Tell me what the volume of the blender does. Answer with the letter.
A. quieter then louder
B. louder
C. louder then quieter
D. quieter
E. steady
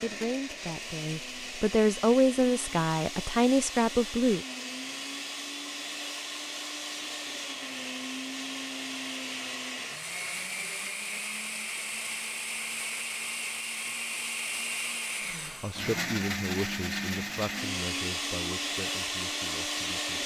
B.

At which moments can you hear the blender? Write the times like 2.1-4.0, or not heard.
0.0-20.2.